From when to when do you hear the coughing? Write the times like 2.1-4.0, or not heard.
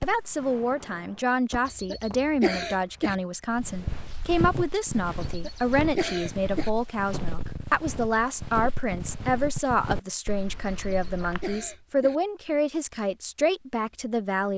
1.6-3.1, 5.2-6.7, 10.8-12.2.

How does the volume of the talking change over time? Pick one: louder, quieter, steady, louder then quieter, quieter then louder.
steady.